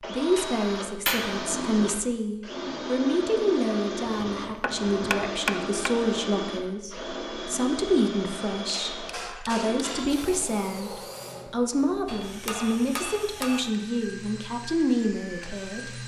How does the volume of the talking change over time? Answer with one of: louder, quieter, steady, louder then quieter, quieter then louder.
steady.